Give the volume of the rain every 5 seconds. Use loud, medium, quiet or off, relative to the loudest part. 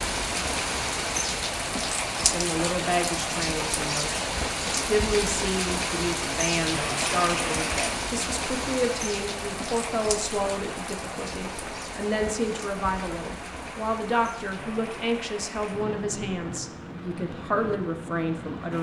loud, loud, medium, medium.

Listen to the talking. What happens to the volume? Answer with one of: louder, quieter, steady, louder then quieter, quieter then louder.
steady.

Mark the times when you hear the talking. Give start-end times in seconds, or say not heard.
2.2-18.7.